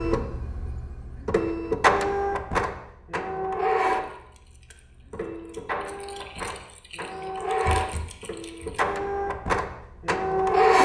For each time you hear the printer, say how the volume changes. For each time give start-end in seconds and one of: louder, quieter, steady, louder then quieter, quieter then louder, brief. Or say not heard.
0.0-10.8 quieter then louder.